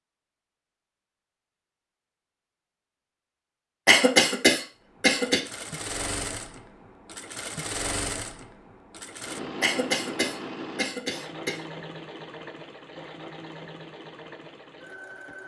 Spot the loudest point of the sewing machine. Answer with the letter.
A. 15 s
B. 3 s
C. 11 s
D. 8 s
D.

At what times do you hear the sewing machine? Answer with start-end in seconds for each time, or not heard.
4.8-15.4.